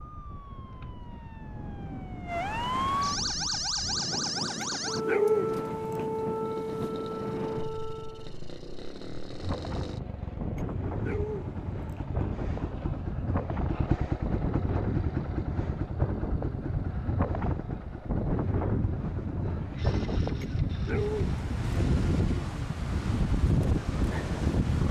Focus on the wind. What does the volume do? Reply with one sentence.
The loudness of the wind goes up.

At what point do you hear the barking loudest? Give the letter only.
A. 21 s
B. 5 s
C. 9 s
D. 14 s
B.